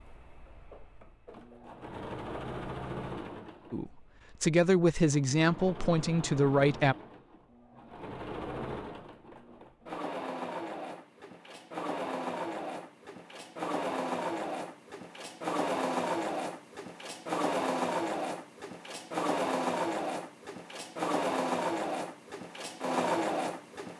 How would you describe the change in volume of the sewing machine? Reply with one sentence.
The loudness of the sewing machine goes up.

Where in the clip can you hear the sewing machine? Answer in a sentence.
The sewing machine can be heard from 0.0 to 23.9 s.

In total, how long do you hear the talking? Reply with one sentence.
The talking can be heard for 3 seconds in total.